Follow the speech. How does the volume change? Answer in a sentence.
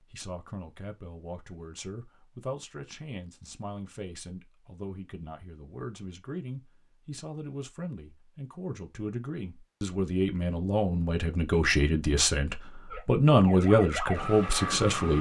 The volume of the speech goes up.